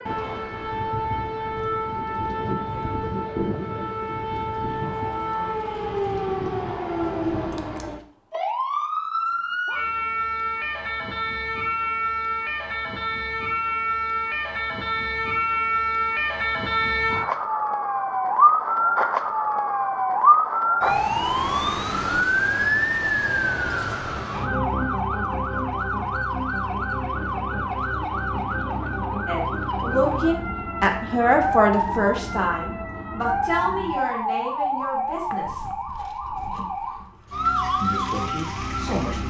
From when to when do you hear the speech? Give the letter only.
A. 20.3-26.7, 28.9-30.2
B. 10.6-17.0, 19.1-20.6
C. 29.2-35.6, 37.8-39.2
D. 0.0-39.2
C.